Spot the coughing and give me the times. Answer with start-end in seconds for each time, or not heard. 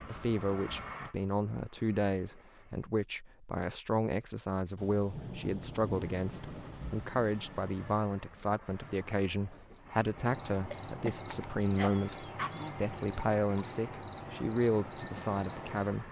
10.7-12.7.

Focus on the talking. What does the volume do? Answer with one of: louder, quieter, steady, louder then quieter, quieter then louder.
steady.